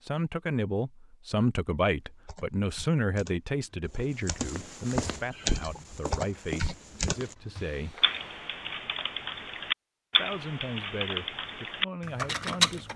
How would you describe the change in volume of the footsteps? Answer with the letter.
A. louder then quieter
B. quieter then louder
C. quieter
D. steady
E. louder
C.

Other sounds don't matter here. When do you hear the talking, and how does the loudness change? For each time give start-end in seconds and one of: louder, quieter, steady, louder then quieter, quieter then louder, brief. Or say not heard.
0.0-8.1 quieter
10.2-12.9 brief.